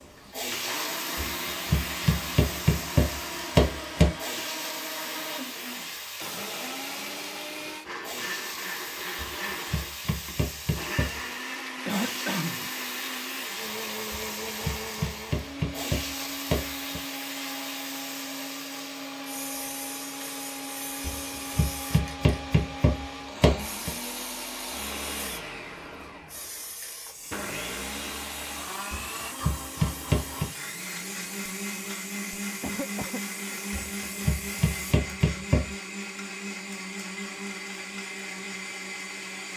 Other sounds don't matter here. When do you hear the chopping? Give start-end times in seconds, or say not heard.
1.1-4.1, 9.2-11.2, 14.1-17.0, 21.1-23.9, 28.9-30.5, 33.7-35.7.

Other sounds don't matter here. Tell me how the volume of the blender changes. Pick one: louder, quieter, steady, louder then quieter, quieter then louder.
steady.